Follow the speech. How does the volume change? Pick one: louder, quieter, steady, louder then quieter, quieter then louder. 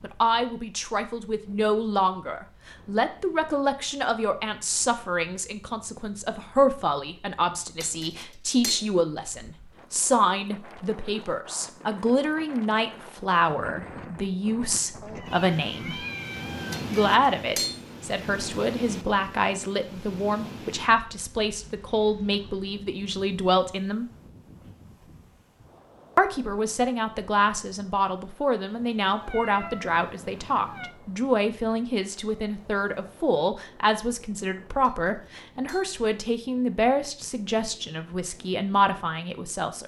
steady.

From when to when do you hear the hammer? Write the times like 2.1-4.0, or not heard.
7.8-8.9, 16.7-17.9, 34.8-36.0.